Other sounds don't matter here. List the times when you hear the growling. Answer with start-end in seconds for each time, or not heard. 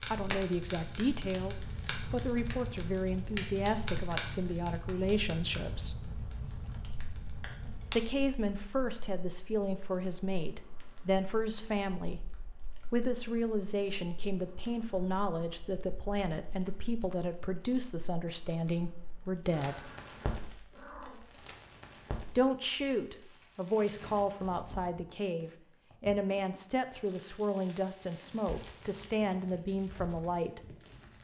19.6-21.4.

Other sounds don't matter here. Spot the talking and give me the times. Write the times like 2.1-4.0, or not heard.
0.1-6.0, 8.0-12.2, 12.9-19.9, 22.4-30.6.